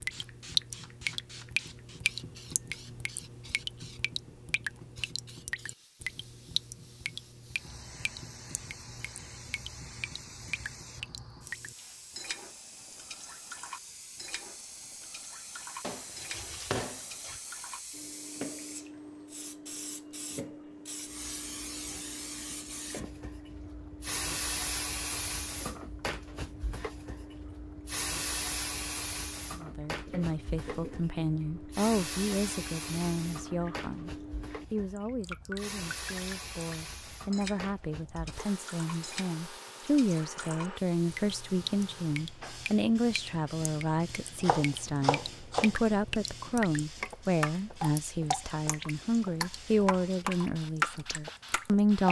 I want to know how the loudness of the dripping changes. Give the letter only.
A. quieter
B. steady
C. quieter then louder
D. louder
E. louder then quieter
C.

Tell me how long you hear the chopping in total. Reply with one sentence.
The chopping can be heard for 3 seconds in total.